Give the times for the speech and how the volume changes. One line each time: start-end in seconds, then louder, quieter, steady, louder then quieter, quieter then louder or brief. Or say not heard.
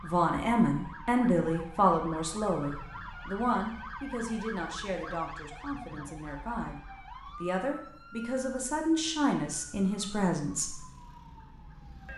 0.0-10.8 quieter then louder.